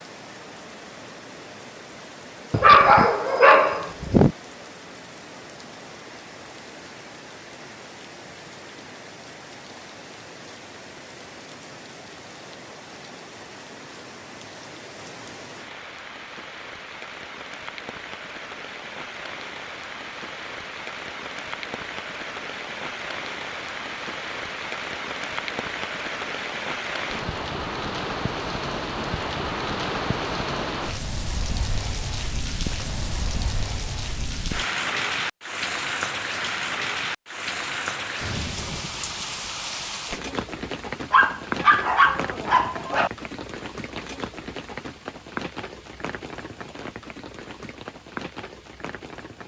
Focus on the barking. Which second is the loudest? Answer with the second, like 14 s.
3 s.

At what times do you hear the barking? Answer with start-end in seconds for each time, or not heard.
2.5-4.3, 41.1-43.1.